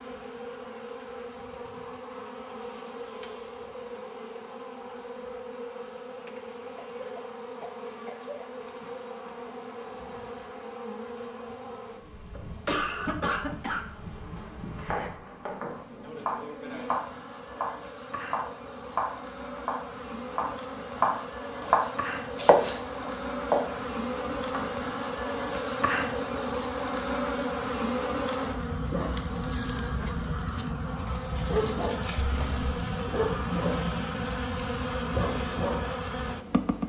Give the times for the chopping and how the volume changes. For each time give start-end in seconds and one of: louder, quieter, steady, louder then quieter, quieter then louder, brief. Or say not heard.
13.8-24.8 louder.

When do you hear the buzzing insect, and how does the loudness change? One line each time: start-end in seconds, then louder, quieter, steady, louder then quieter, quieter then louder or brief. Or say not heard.
0.0-36.8 louder.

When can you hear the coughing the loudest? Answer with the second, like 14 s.
13 s.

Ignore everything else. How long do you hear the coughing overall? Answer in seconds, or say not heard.
4 s.